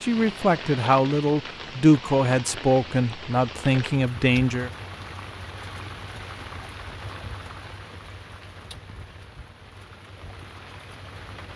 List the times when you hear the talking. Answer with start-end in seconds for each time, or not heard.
0.0-4.7.